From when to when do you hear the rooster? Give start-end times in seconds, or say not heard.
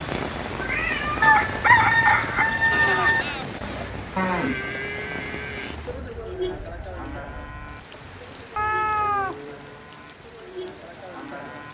1.2-3.2.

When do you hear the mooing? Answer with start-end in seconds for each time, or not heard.
2.7-11.6.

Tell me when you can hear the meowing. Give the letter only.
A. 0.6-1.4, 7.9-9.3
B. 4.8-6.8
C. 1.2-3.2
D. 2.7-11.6
A.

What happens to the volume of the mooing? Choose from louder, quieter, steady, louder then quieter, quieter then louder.
quieter.